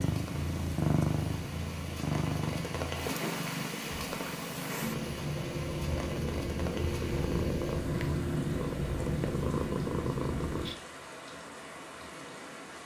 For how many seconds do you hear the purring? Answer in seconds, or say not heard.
11 s.